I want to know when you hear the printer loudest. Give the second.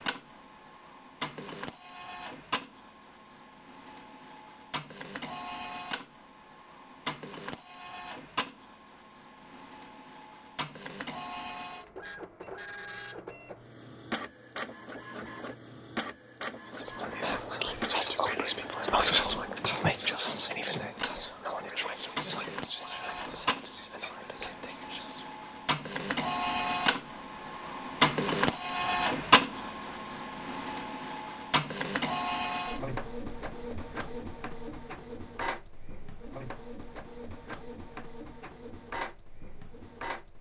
29 s.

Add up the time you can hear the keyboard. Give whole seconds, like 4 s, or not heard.
not heard.